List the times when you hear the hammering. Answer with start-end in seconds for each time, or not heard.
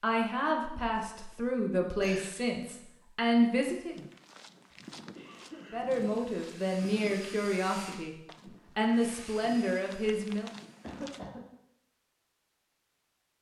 not heard.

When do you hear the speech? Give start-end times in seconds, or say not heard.
0.0-4.0, 5.7-8.2, 8.8-10.5.